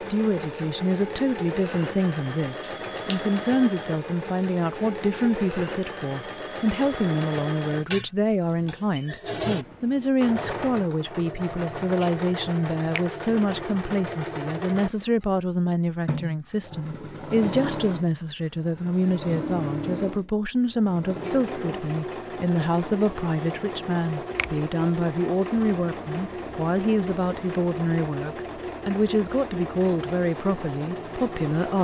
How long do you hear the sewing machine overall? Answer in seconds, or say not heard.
32 s.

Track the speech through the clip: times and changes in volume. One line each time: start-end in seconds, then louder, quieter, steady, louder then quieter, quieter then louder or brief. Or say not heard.
0.1-31.7 steady.